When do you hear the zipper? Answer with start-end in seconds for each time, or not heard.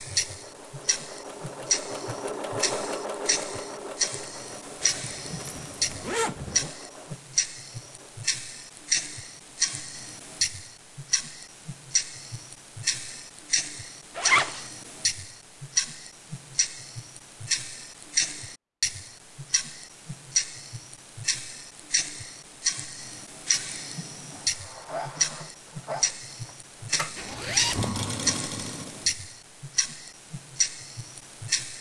4.8-6.7, 14.2-14.7, 27.1-28.0.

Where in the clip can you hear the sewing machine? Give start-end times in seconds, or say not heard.
0.0-8.3, 24.3-29.1.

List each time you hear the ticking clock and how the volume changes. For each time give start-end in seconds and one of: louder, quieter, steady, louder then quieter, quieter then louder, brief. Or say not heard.
0.0-31.7 steady.